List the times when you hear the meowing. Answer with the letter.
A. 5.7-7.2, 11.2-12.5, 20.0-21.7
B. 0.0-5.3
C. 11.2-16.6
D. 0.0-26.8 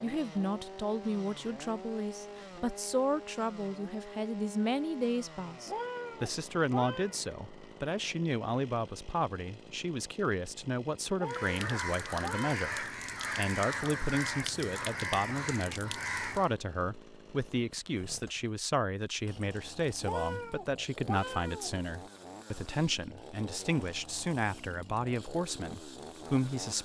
A.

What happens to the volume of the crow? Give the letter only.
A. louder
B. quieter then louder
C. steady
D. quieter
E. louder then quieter
C.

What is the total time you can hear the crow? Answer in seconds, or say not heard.
5 s.